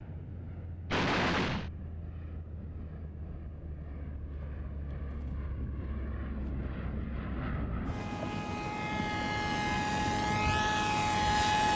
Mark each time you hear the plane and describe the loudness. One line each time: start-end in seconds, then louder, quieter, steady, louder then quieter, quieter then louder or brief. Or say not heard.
0.0-11.7 louder.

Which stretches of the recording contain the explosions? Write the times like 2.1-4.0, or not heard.
0.9-1.7.